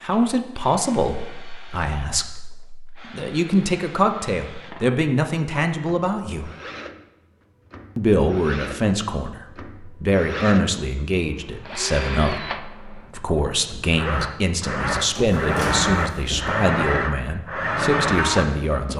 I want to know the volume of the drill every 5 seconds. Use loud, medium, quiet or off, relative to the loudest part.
quiet, quiet, medium, loud.